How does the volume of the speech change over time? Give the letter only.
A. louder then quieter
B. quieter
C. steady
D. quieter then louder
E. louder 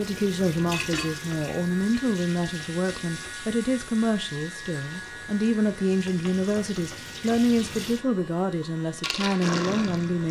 C.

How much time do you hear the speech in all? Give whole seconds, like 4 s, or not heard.
10 s.